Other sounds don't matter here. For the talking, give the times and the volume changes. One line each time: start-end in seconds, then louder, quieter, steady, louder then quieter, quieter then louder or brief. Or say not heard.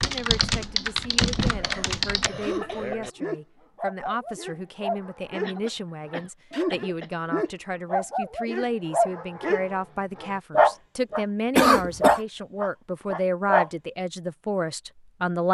0.0-15.4 louder.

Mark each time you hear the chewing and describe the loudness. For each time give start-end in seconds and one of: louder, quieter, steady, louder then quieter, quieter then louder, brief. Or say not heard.
not heard.